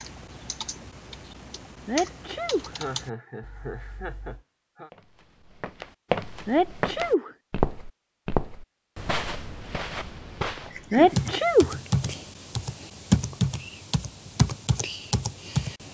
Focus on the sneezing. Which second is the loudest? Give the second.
11 s.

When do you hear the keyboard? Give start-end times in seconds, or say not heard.
0.0-4.5, 11.1-15.8.